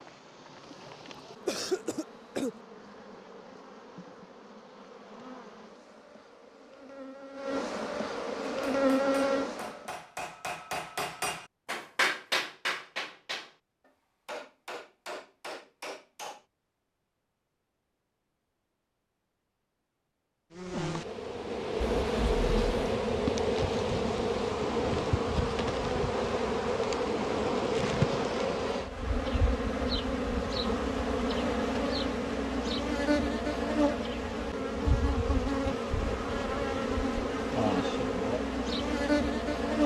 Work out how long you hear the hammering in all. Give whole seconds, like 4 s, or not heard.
8 s.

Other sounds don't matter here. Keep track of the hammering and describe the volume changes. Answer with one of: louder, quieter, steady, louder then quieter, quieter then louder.
louder then quieter.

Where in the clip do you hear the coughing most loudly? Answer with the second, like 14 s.
2 s.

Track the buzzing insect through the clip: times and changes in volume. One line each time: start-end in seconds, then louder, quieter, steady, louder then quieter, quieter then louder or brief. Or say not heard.
0.0-9.9 louder
20.6-39.8 steady.